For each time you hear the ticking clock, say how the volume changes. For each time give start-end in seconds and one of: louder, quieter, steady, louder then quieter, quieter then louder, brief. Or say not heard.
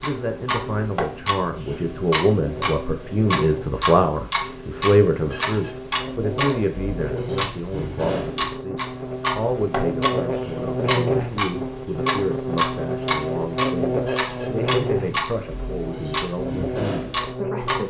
0.0-17.8 steady.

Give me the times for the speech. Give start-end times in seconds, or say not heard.
0.0-17.8.